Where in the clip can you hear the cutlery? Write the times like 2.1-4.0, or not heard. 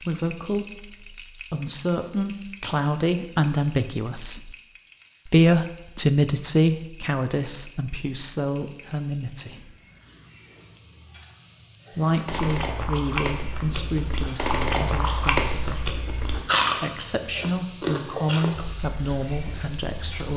not heard.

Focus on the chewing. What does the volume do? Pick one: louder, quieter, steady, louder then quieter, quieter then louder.
louder then quieter.